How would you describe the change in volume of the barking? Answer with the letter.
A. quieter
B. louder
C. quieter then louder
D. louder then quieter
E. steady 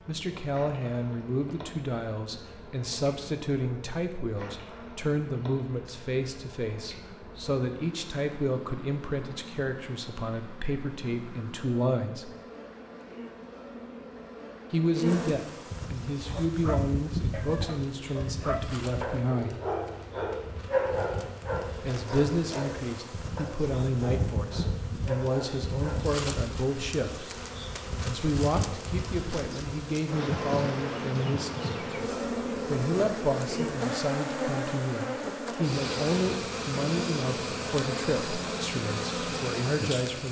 D.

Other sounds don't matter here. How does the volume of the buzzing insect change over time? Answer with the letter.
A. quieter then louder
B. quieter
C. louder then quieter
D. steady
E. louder
E.